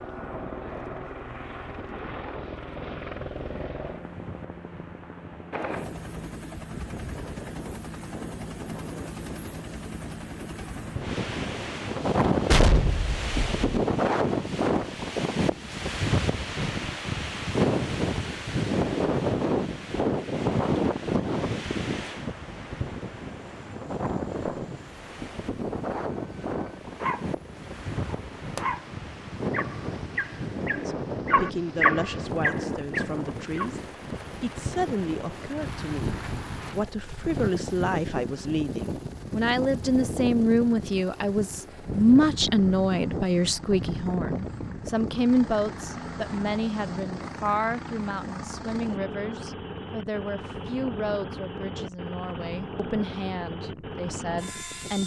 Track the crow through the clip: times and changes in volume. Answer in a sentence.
The crow can't be heard in this clip.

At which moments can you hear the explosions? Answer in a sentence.
The explosions can be heard from 12.5 to 13.7 s.